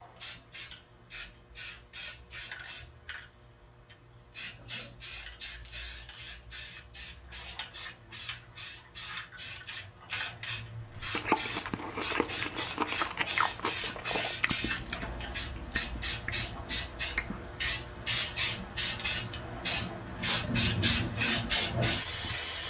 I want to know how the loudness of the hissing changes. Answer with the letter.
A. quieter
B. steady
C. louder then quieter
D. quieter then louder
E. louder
E.